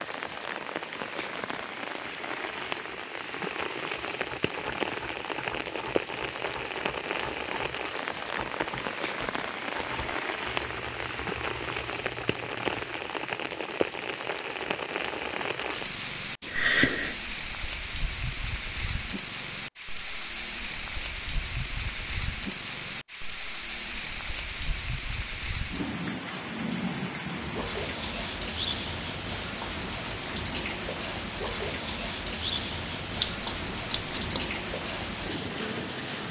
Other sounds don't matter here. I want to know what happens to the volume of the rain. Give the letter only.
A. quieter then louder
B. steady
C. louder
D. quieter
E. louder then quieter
B.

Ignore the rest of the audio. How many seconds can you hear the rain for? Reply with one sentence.
The rain can be heard for 36 seconds in total.